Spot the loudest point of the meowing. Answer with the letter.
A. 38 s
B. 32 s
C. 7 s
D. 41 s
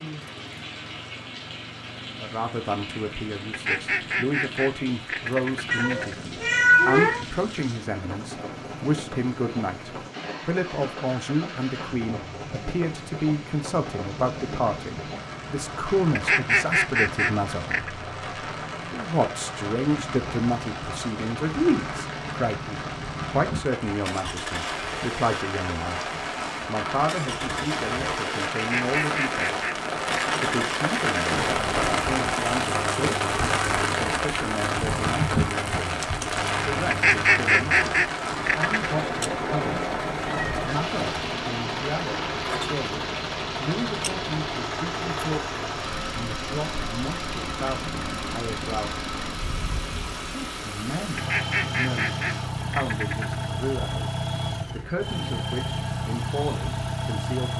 C.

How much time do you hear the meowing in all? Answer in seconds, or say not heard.
4 s.